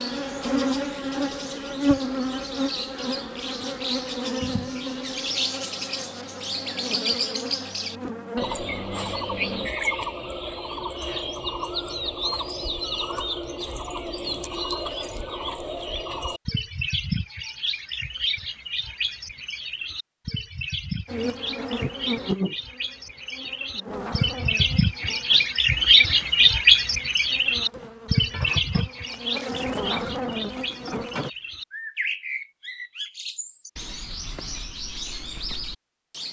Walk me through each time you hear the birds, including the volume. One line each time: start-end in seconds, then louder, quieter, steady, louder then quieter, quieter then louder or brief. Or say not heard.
0.0-36.2 louder then quieter.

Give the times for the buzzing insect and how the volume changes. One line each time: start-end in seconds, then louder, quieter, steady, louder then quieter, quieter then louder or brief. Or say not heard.
0.0-9.7 quieter
21.1-31.3 quieter then louder.